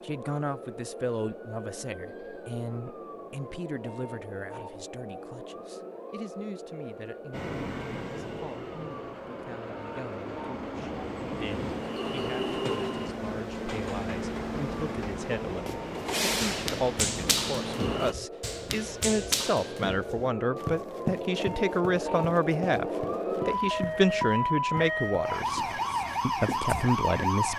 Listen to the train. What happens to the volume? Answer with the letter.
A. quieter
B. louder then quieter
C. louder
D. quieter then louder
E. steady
C.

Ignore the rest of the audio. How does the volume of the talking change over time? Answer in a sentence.
The loudness of the talking goes down, then up.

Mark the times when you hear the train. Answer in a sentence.
You can hear the train from 7.3 to 18.1 s.